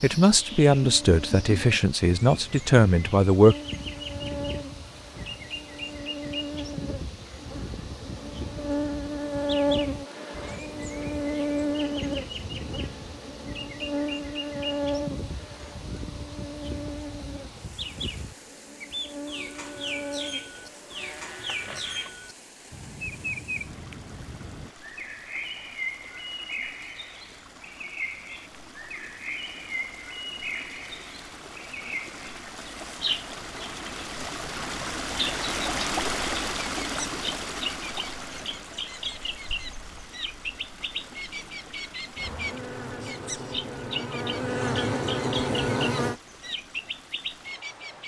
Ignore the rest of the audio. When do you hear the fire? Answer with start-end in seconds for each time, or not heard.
not heard.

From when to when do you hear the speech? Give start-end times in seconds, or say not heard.
0.0-3.5.